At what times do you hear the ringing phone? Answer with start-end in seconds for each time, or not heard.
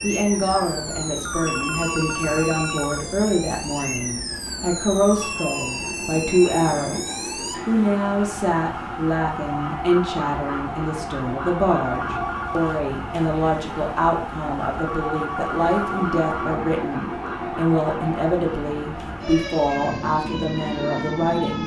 1.2-3.0, 11.8-12.8, 14.8-16.6.